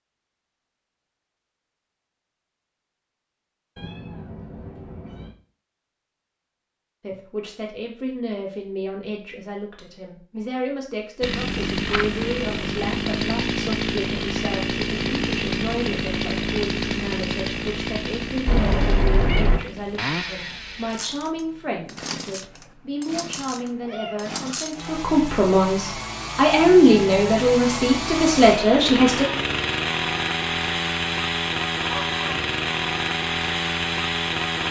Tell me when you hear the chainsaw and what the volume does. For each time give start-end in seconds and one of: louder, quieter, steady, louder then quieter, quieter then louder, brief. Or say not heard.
11.2-34.6 quieter then louder.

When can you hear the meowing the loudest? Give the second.
19 s.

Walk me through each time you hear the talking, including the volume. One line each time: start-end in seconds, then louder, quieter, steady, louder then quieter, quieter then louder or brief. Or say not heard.
7.0-29.2 louder.